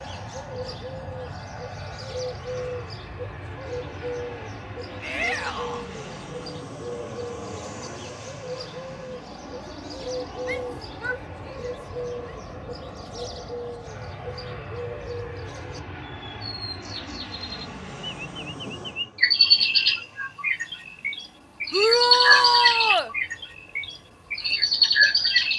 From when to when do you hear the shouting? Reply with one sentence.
You can hear the shouting from 5.0 to 5.8 s, from 10.4 to 12.3 s and from 21.7 to 23.1 s.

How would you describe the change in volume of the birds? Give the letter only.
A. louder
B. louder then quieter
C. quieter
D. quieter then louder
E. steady
A.